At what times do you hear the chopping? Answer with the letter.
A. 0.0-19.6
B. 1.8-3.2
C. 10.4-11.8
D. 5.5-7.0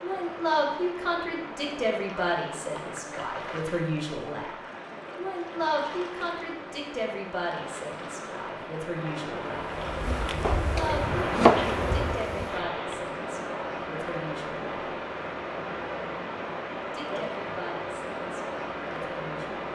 C.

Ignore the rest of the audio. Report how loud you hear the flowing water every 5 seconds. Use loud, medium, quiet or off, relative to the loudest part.
medium, medium, loud, loud.